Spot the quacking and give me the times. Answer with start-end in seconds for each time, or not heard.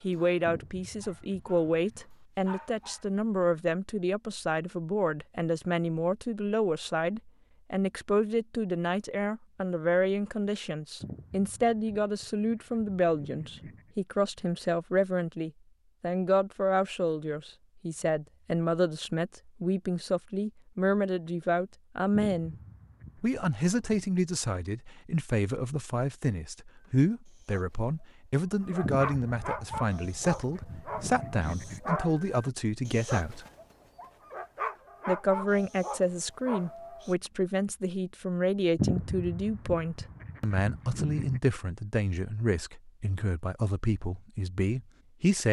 0.5-2.0, 11.0-13.9, 22.1-24.1, 28.8-31.8, 38.8-41.4.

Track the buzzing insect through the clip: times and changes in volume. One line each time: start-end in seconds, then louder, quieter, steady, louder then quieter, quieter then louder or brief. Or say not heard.
not heard.